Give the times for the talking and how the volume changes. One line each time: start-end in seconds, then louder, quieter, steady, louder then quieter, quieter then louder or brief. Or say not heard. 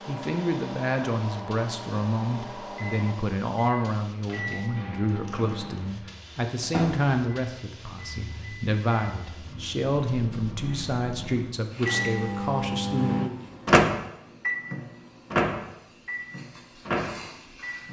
0.1-13.3 steady.